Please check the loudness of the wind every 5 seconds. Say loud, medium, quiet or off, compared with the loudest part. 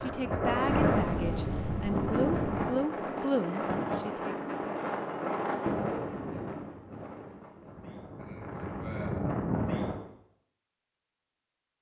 loud, loud, off.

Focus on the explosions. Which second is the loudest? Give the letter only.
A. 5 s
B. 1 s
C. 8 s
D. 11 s
B.